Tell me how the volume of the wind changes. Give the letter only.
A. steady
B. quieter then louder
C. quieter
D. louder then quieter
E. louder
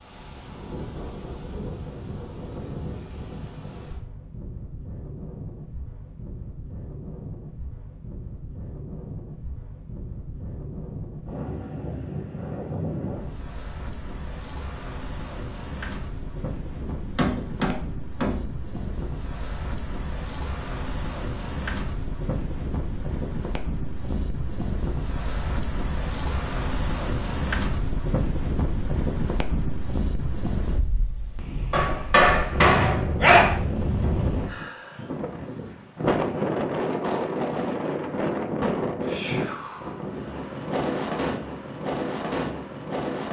E.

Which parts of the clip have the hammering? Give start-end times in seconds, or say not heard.
16.9-18.5, 31.7-33.5.